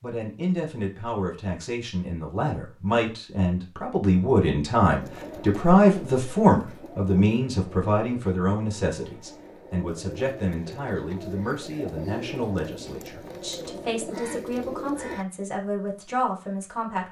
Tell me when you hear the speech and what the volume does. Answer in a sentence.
The speech can be heard from 0.0 to 17.0 s, getting louder then quieter.